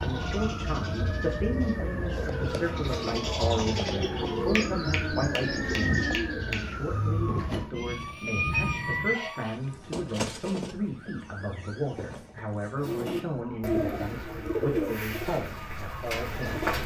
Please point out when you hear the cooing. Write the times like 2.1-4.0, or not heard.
0.0-6.7, 12.8-16.8.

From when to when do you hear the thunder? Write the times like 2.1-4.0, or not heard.
7.7-9.2.